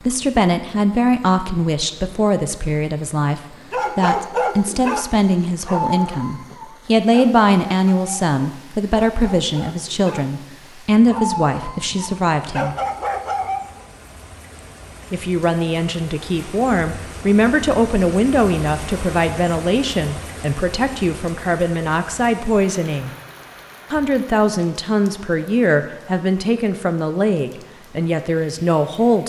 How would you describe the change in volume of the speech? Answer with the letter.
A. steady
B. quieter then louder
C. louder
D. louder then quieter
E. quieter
A.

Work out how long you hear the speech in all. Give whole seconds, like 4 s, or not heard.
26 s.